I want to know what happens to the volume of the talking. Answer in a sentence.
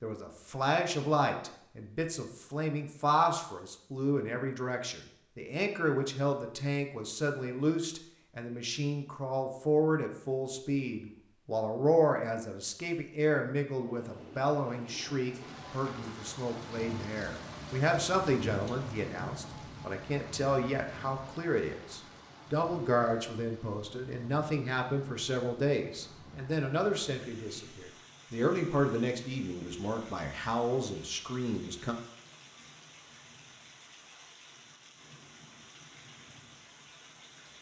The loudness of the talking stays about the same.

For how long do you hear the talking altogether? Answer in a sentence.
You can hear the talking for 32 seconds altogether.